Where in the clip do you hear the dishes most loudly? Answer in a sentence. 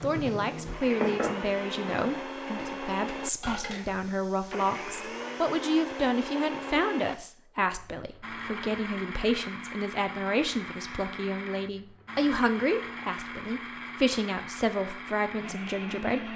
The volume of the dishes peaks at 1 second.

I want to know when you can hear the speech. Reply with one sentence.
The speech can be heard from 0.0 to 16.3 s.